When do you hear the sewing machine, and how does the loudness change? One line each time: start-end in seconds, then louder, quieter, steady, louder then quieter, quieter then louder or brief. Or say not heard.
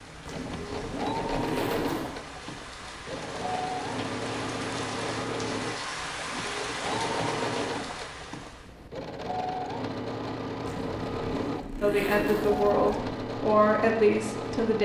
0.0-14.8 steady.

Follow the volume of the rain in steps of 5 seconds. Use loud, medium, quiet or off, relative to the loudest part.
medium, loud, off.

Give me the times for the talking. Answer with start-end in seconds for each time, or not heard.
11.8-14.8.